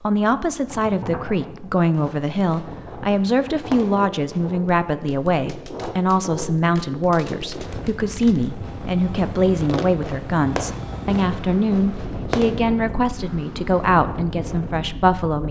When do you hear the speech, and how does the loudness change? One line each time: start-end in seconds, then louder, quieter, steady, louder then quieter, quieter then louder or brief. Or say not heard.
0.0-15.4 steady.